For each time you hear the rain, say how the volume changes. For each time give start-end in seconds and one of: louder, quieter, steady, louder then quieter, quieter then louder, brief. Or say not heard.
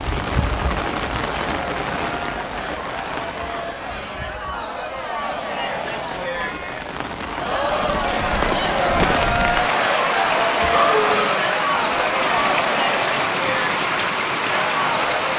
0.0-15.3 quieter then louder.